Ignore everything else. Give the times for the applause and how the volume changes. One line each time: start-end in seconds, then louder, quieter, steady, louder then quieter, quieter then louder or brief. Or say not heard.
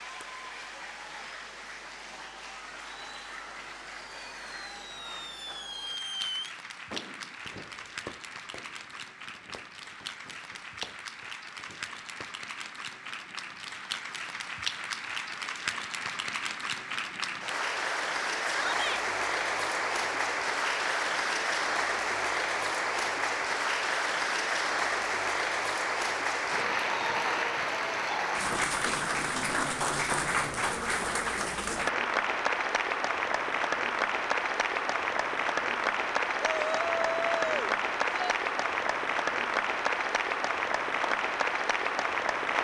0.0-42.5 louder.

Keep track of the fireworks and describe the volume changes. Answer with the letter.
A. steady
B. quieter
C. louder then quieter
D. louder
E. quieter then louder
E.